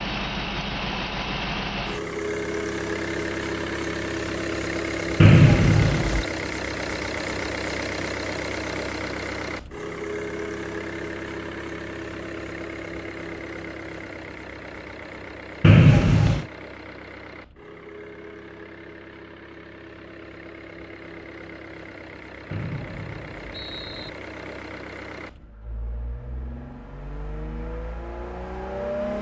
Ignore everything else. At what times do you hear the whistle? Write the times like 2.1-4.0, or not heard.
5.2-6.2, 15.6-16.4, 22.5-24.1.